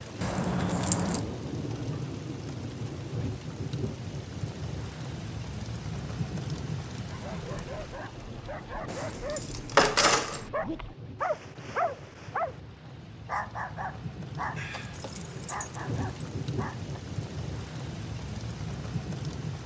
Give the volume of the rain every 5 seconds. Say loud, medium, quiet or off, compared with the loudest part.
loud, loud, medium, loud.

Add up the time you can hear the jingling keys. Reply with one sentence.
The jingling keys can be heard for 4 seconds in total.